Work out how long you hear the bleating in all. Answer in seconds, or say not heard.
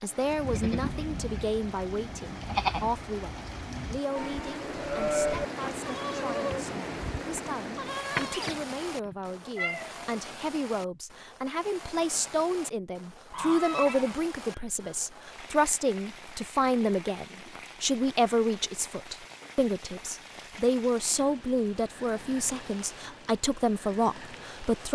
9 s.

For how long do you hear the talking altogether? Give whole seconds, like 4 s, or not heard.
25 s.